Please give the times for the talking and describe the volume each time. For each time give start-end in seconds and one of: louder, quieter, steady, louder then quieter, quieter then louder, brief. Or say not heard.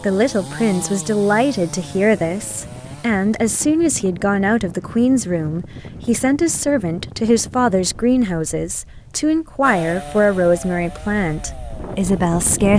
0.0-12.7 steady.